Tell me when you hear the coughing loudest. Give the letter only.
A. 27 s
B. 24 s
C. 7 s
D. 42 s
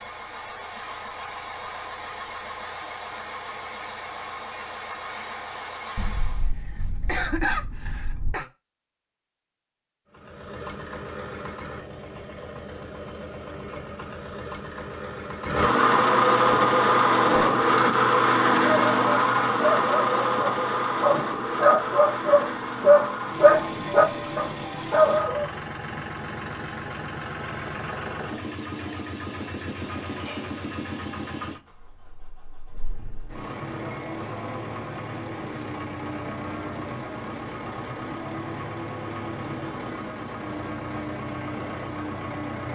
C.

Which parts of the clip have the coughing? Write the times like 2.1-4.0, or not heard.
6.0-8.4.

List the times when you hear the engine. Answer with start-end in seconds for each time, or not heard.
0.0-6.5, 10.1-42.7.